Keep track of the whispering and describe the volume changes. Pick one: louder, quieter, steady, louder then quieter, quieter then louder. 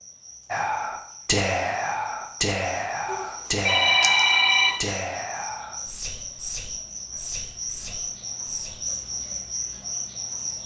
quieter.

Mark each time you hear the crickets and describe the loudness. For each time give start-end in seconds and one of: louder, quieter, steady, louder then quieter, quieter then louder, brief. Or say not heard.
0.0-10.6 louder.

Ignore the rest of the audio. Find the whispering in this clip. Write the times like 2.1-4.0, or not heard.
0.5-8.8.